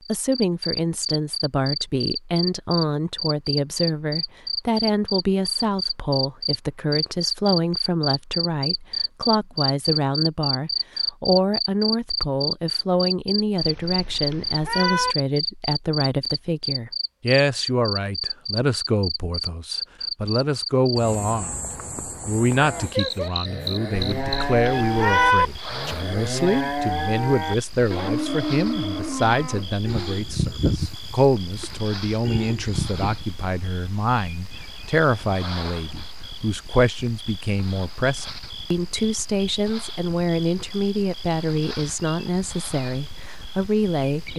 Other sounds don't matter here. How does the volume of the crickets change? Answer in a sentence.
The volume of the crickets goes down.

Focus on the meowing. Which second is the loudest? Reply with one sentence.
The volume of the meowing peaks at 25 seconds.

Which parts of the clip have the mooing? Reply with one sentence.
The mooing can be heard from 22.5 to 33.2 s.